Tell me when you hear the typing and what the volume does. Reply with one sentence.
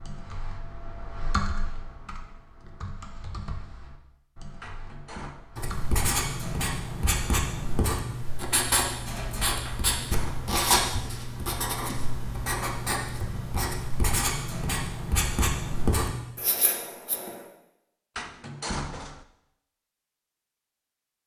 The typing can be heard from 0.0 to 5.9 s, getting quieter.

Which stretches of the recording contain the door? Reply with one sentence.
You can hear the door from 4.6 to 5.4 s, from 9.7 to 10.7 s and from 18.1 to 19.2 s.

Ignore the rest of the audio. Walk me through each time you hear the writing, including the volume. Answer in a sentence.
You can hear the writing from 5.5 to 17.4 s, at a steady volume.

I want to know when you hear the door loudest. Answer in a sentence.
The loudest moment of the door is at 19 seconds.